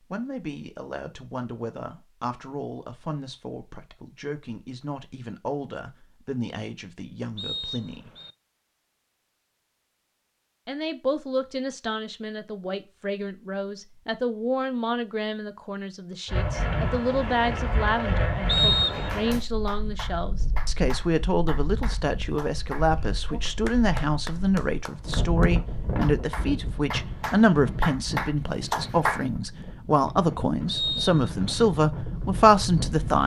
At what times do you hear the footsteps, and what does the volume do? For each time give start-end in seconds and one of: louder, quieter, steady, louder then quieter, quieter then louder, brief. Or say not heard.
not heard.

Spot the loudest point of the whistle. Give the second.
19 s.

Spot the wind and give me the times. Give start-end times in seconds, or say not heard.
16.2-33.2.